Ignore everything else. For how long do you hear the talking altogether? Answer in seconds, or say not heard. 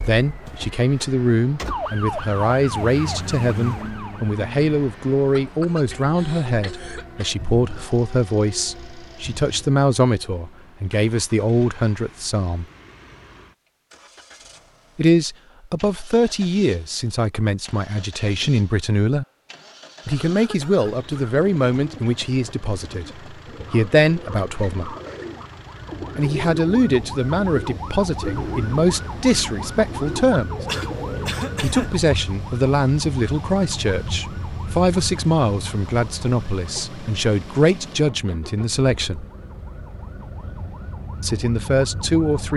35 s.